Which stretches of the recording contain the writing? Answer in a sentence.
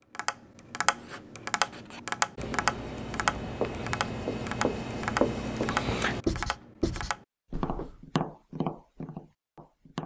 The writing can be heard from 0.9 to 8.0 s.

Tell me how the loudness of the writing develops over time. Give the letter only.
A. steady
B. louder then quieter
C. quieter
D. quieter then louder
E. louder
B.